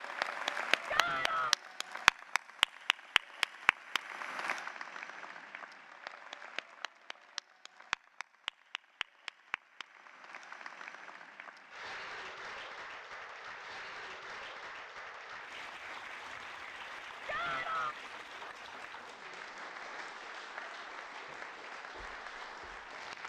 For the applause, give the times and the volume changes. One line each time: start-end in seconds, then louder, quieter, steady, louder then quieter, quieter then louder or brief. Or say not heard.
0.0-23.2 quieter.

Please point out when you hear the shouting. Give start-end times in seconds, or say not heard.
0.8-1.6, 17.2-17.9.